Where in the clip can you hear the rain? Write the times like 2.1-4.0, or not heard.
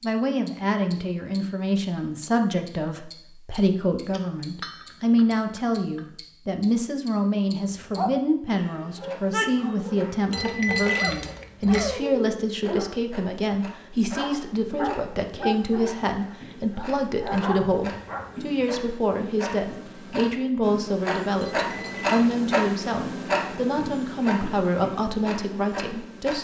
not heard.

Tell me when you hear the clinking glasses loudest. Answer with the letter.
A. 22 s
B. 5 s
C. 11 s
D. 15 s
C.